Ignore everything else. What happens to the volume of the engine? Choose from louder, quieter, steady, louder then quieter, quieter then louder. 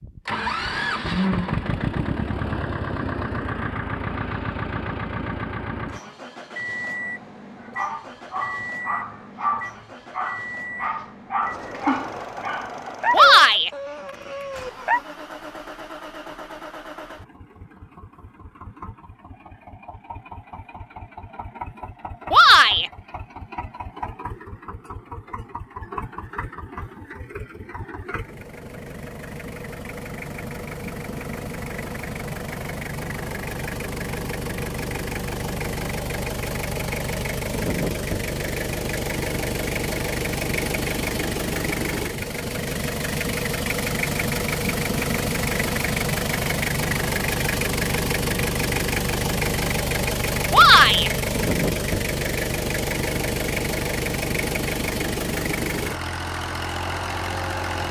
quieter then louder.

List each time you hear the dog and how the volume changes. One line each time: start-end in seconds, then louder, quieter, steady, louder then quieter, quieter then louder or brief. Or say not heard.
7.6-15.0 louder then quieter.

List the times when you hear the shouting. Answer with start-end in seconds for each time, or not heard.
13.1-13.7, 22.3-22.9, 50.5-51.1.